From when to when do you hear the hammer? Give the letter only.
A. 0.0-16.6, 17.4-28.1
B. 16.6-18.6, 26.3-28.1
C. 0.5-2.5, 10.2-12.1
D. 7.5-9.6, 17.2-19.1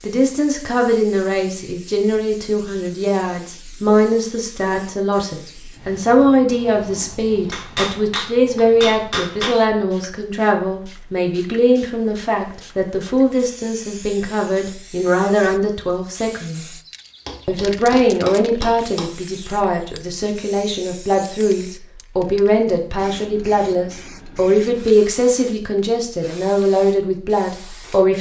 D.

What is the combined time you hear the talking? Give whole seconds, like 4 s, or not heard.
27 s.